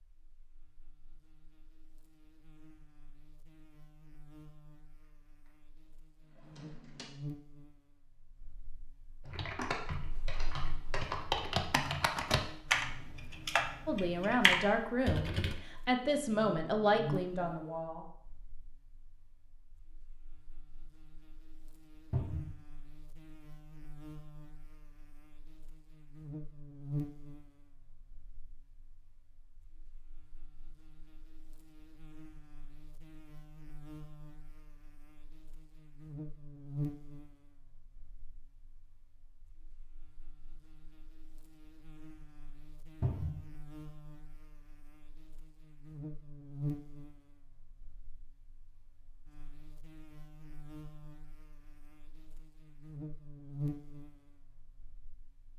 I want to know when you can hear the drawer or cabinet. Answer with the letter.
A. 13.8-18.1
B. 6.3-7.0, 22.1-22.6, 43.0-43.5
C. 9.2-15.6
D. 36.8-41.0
B.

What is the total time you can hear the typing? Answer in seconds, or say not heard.
6 s.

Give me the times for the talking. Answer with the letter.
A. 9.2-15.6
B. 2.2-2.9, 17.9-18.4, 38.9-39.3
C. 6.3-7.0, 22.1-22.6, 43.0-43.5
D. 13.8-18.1
D.